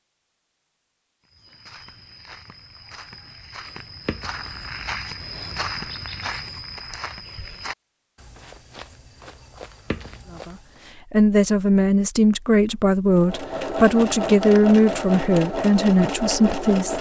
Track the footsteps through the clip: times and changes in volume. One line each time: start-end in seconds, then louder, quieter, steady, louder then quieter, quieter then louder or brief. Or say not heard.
1.2-11.0 louder then quieter.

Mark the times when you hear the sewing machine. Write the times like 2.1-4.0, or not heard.
13.1-16.9.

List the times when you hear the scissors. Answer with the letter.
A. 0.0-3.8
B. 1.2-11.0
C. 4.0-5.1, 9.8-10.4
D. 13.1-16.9
C.